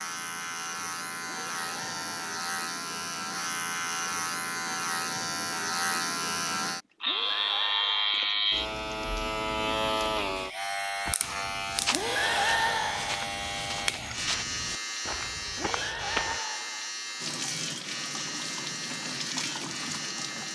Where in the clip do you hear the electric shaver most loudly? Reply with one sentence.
The loudest moment of the electric shaver is at 8 seconds.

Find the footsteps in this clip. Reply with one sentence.
The footsteps can be heard from 11.1 to 16.4 s.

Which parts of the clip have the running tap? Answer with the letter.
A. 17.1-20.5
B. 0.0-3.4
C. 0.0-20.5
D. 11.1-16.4
A.